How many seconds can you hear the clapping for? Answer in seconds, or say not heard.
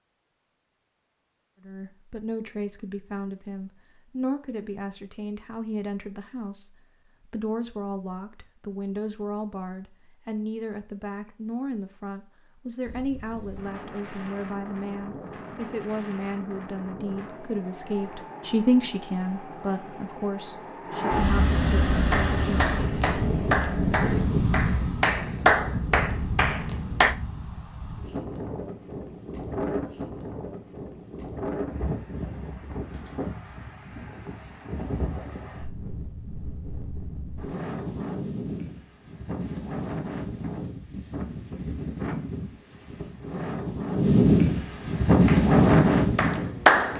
7 s.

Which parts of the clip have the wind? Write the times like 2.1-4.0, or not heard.
12.8-46.9.